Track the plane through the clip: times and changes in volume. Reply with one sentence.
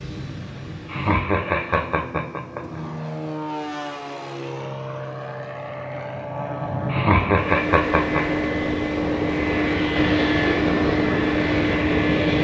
You can hear the plane from 0.0 to 12.3 s, getting louder.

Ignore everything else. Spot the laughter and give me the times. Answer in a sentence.
You can hear the laughter from 0.8 to 2.8 s and from 6.8 to 8.2 s.